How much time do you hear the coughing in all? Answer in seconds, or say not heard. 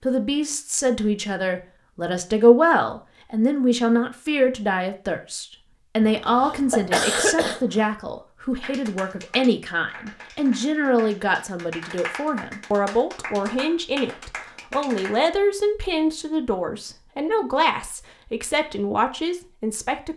2 s.